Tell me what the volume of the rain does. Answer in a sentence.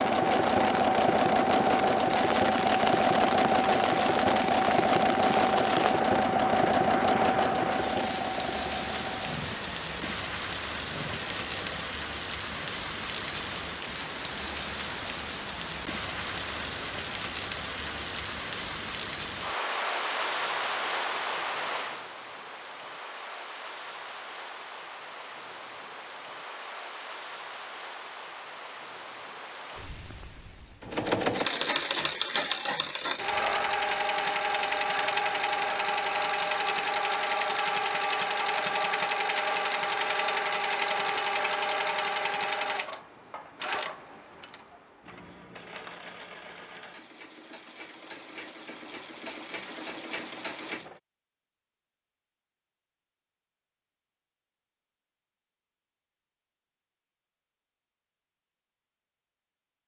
The loudness of the rain goes down.